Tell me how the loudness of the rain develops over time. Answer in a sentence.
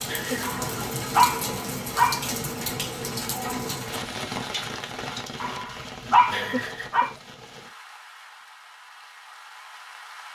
The loudness of the rain goes down.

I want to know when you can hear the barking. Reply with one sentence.
You can hear the barking from 0.4 to 2.2 s and from 5.4 to 7.1 s.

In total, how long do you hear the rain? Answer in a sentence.
You can hear the rain for 10 seconds altogether.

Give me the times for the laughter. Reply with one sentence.
The laughter can be heard from 0.1 to 0.6 s and from 6.3 to 7.0 s.